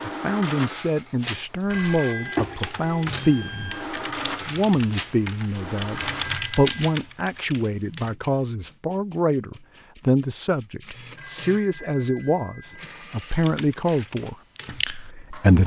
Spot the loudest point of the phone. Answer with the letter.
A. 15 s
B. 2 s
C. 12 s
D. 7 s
B.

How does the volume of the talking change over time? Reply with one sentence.
The volume of the talking stays about the same.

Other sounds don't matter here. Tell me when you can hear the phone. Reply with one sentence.
The phone can be heard from 1.6 to 2.5 s, from 6.0 to 7.0 s and from 11.2 to 12.9 s.